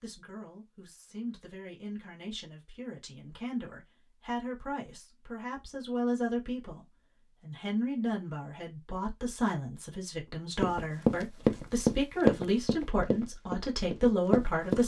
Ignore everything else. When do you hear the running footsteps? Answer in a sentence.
The running footsteps can be heard from 10.6 to 14.8 s.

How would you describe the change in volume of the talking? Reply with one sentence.
The volume of the talking goes up.